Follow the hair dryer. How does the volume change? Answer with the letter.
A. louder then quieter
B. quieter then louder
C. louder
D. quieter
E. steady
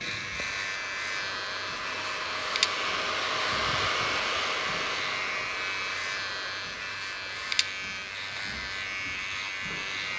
A.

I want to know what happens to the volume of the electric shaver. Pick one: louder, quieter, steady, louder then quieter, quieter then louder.
steady.